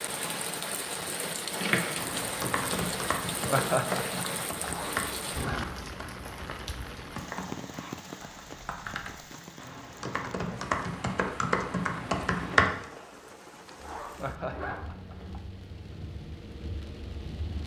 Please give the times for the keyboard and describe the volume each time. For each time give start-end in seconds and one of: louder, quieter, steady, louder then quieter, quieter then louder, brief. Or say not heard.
1.6-12.8 quieter then louder.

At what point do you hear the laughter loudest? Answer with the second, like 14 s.
4 s.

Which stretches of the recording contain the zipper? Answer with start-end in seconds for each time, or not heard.
4.6-5.7, 13.8-15.3.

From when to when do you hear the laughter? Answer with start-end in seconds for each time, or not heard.
3.5-4.7, 14.2-15.4.